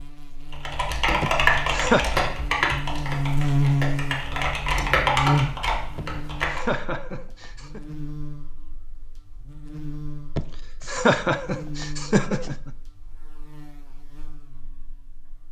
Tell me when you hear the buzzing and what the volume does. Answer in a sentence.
You can hear the buzzing from 0.0 to 15.4 s, getting louder then quieter.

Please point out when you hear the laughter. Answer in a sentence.
You can hear the laughter from 1.2 to 2.0 s, from 6.0 to 7.8 s and from 10.3 to 12.7 s.